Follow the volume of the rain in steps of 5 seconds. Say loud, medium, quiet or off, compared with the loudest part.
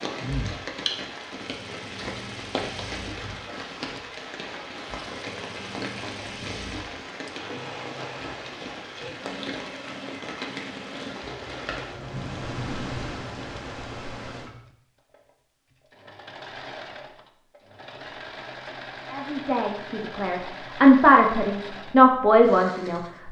loud, loud, loud, off, off.